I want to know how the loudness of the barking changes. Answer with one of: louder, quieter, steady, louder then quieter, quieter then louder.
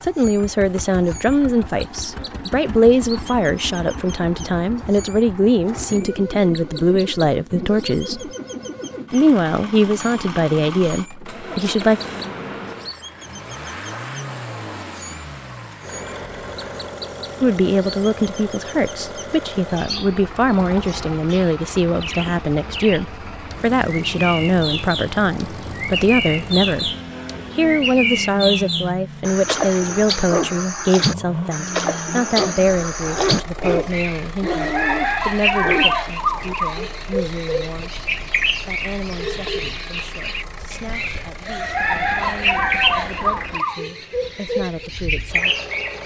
louder.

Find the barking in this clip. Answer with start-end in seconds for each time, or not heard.
30.2-36.5.